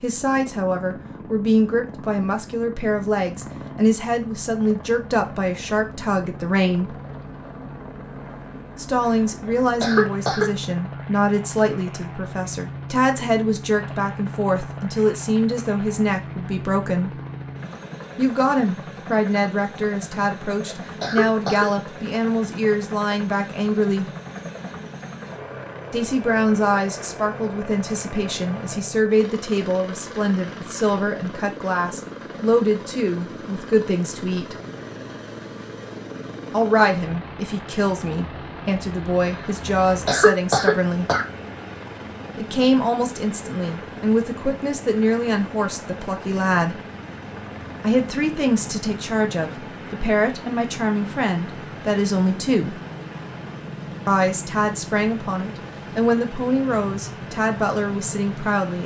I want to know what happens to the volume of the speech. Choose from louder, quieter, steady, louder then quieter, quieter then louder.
steady.